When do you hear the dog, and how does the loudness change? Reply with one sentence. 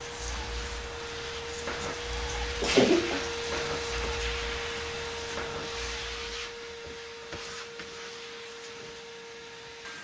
You can't hear the dog here.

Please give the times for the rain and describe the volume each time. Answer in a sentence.
You can hear the rain from 0.0 to 9.9 s, getting quieter.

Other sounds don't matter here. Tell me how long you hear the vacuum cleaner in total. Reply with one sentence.
You can hear the vacuum cleaner for 10 seconds altogether.